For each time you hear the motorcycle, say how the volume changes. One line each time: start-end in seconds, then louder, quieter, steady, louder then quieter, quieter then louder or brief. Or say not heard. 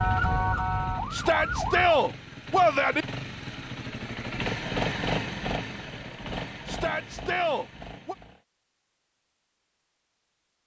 0.0-8.4 louder then quieter.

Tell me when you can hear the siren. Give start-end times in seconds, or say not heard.
0.0-2.0.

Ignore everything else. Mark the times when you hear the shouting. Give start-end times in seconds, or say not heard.
1.1-3.0, 6.7-8.2.